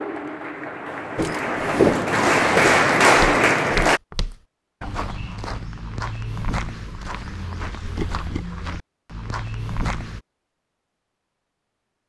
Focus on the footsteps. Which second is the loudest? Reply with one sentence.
The volume of the footsteps peaks at 2 seconds.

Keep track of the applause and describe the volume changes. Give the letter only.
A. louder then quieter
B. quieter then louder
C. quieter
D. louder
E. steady
D.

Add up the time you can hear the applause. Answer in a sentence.
The applause can be heard for 4 seconds in total.